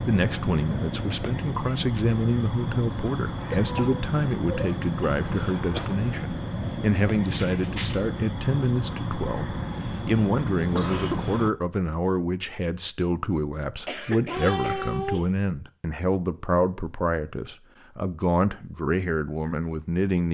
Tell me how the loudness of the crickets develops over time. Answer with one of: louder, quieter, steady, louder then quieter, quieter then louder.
steady.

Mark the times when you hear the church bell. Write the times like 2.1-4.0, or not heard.
not heard.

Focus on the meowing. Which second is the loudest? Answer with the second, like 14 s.
15 s.